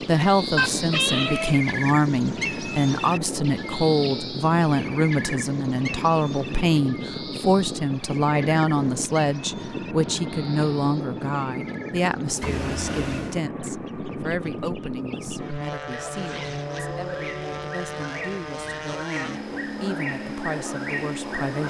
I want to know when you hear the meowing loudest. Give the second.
1 s.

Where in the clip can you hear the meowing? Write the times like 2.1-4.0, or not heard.
0.6-1.6, 12.4-13.4.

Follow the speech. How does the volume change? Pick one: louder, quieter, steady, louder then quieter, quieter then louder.
quieter.